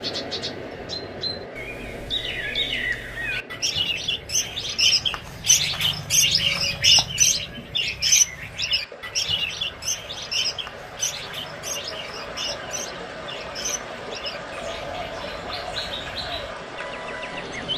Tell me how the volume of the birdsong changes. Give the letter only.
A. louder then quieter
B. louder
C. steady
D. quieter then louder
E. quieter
A.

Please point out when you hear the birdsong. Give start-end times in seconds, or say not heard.
0.0-17.7.